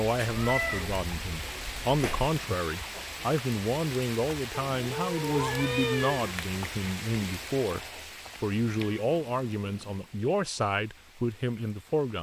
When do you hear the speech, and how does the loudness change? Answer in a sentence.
You can hear the speech from 0.0 to 12.1 s, at a steady volume.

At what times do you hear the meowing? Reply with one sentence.
You can hear the meowing from 0.2 to 2.3 s, from 4.7 to 6.3 s and from 8.6 to 10.1 s.